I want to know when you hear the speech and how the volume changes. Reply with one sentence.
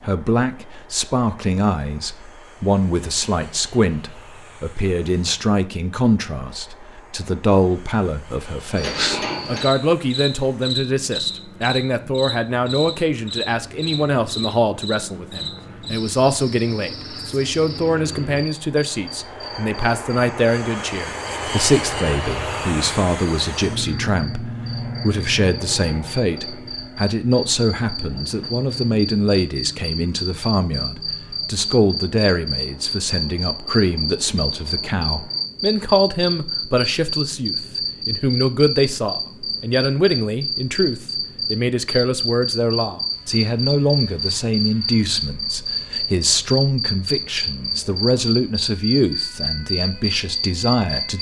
The speech can be heard from 0.0 to 51.1 s, at a steady volume.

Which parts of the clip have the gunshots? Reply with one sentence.
You can't hear the gunshots here.